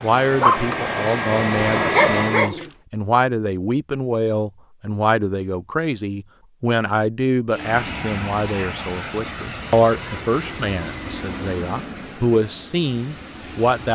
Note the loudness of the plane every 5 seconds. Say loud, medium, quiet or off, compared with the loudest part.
loud, medium, medium.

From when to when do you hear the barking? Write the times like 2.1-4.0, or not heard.
0.0-2.7.